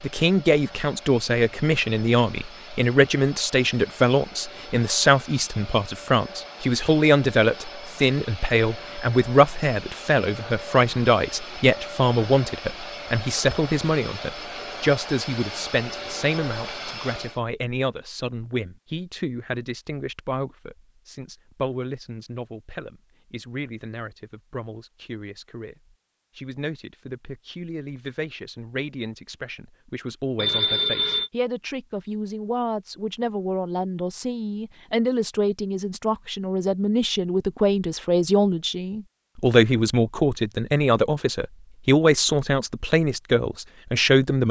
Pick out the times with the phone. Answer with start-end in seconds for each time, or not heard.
30.4-31.3.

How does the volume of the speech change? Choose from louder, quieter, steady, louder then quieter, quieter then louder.
quieter then louder.